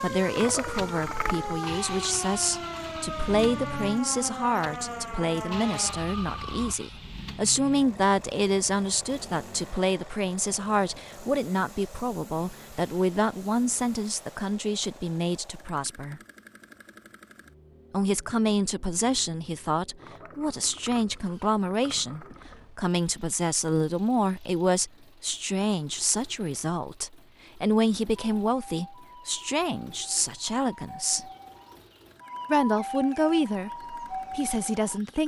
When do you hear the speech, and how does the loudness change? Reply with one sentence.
The speech can be heard from 0.0 to 16.2 s, at a steady volume; from 17.9 to 31.2 s, at a steady volume; and briefly from 32.5 to 35.2 s.